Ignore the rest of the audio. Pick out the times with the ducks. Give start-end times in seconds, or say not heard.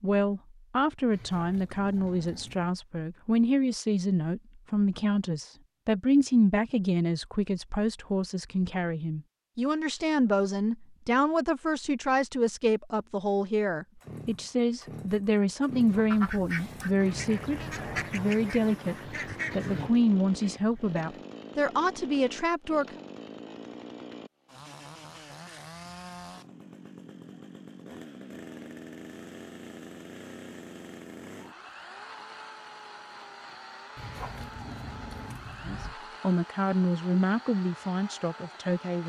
16.1-21.2.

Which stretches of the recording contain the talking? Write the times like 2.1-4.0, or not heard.
0.0-22.9, 35.6-39.0.